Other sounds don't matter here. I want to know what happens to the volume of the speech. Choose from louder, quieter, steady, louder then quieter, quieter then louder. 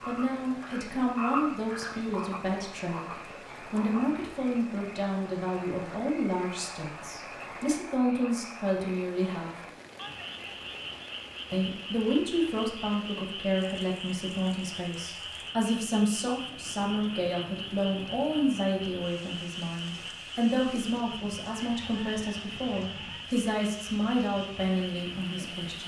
steady.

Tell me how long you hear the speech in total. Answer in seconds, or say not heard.
24 s.